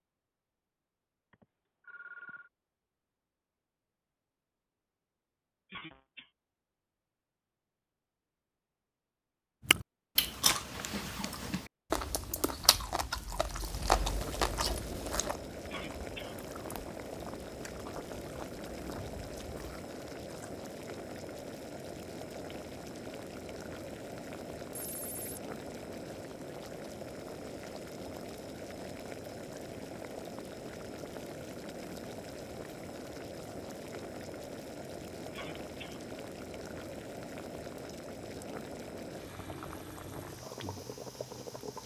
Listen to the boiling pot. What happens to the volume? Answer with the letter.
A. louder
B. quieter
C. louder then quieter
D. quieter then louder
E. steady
E.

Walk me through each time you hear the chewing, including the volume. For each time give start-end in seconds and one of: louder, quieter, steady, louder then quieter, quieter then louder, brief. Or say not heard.
9.7-20.5 quieter.